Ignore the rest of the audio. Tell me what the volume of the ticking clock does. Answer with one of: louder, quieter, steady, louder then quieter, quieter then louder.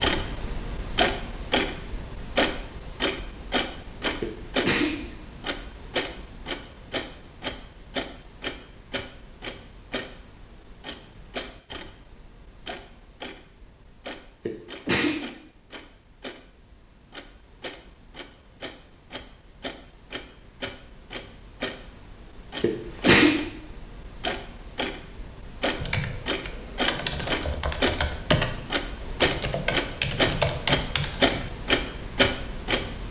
quieter then louder.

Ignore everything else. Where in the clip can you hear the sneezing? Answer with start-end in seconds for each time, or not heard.
4.2-5.0, 14.4-15.3, 22.6-23.4.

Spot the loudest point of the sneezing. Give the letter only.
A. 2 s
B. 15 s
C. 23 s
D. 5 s
C.